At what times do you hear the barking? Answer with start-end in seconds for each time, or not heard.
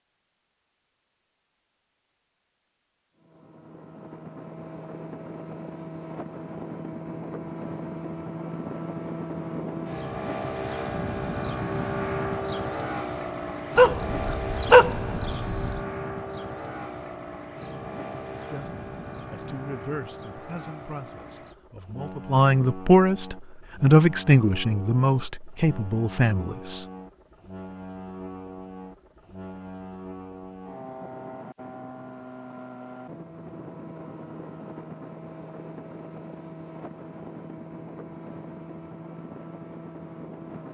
13.8-15.8.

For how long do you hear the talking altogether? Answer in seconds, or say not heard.
8 s.